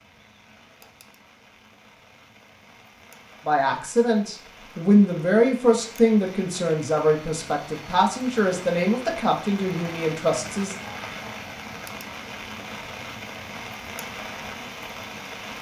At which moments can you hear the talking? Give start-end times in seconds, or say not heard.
3.5-10.8.